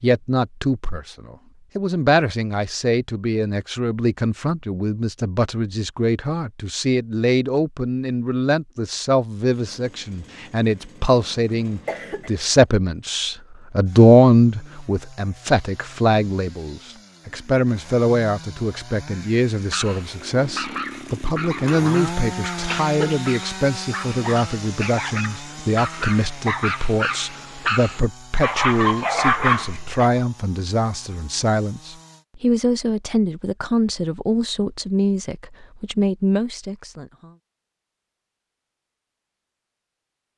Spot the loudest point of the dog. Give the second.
29 s.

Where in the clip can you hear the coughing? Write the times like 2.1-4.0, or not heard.
11.4-12.3, 22.6-23.2.